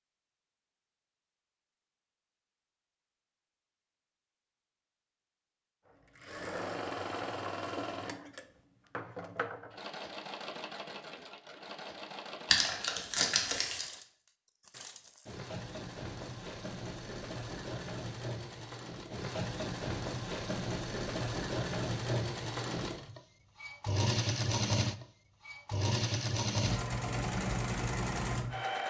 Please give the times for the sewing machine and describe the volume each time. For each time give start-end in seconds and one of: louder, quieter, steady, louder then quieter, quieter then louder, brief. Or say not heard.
6.2-28.8 quieter then louder.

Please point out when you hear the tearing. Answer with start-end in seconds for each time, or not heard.
12.5-13.8.